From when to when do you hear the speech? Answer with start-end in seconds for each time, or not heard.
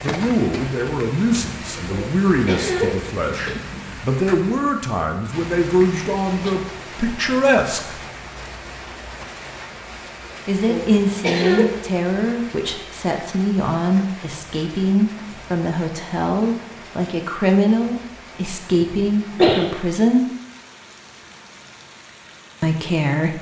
0.0-8.0, 10.4-20.2, 22.6-23.3.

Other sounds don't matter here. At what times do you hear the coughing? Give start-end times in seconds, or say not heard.
1.9-3.9, 10.7-11.7, 18.8-19.7.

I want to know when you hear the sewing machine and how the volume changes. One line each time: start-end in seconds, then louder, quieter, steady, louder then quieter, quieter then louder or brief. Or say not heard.
not heard.